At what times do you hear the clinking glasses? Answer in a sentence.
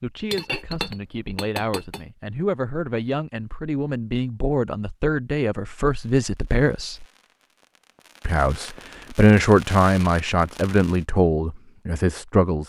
The clinking glasses can be heard from 0.3 to 2.0 s.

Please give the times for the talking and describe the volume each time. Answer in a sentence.
The talking can be heard from 0.0 to 7.0 s, getting louder; and from 8.2 to 12.6 s, getting quieter.